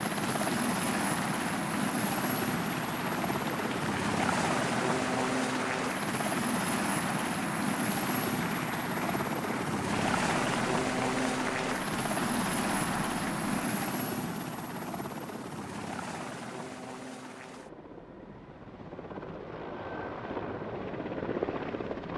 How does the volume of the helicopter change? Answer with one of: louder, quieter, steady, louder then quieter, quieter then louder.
quieter.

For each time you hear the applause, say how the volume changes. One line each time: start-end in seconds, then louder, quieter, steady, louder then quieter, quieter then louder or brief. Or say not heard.
0.0-13.9 steady.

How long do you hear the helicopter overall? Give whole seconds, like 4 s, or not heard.
22 s.